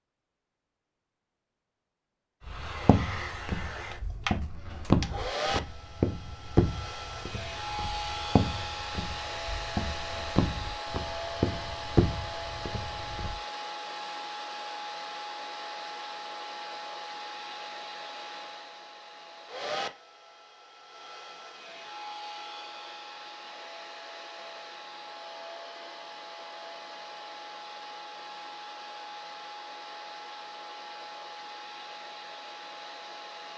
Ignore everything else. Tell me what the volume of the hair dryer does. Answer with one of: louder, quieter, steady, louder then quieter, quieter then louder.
quieter.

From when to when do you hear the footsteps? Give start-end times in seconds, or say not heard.
2.5-13.3.